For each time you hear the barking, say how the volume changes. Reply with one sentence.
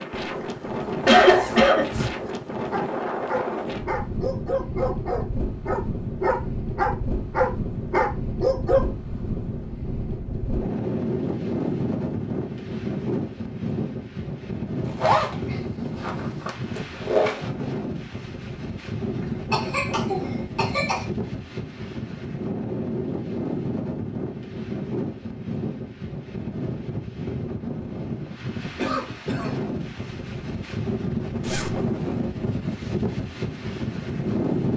You can hear the barking from 2.7 to 8.8 s, getting louder.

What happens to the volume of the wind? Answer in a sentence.
The loudness of the wind stays about the same.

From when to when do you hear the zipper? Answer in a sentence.
You can hear the zipper from 1.0 to 2.4 s, from 14.8 to 17.5 s and from 31.4 to 31.8 s.